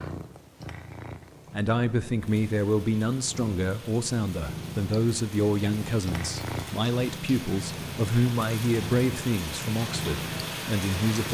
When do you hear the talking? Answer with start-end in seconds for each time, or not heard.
1.5-11.3.